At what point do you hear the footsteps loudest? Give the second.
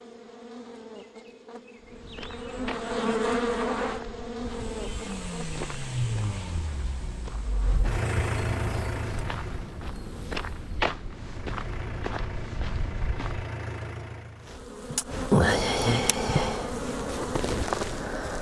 11 s.